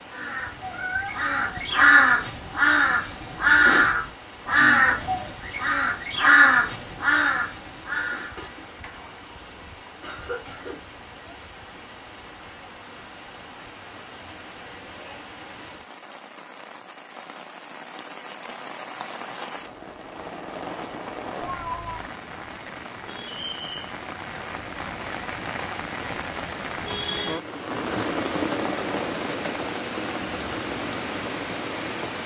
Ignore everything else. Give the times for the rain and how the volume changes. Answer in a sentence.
You can hear the rain from 0.0 to 32.2 s, getting louder.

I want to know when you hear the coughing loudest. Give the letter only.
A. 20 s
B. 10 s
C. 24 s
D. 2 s
B.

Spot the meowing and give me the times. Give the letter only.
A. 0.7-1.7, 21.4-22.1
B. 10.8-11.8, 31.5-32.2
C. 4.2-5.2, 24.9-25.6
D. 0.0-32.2
A.